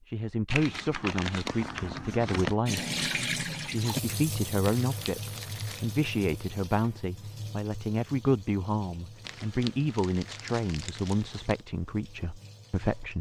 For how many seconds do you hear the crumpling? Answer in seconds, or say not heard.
6 s.